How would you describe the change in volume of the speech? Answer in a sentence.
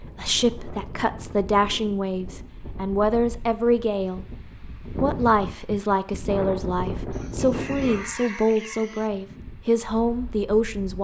The volume of the speech stays about the same.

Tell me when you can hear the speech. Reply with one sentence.
You can hear the speech from 0.1 to 4.2 s and from 5.0 to 10.9 s.